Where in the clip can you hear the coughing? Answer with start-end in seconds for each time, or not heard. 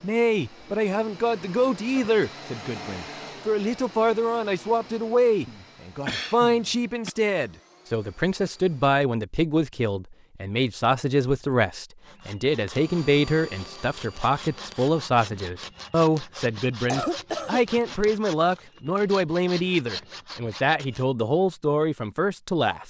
5.5-7.1, 16.9-17.6.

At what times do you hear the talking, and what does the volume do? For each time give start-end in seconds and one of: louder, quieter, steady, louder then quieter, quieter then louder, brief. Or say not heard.
0.0-22.8 steady.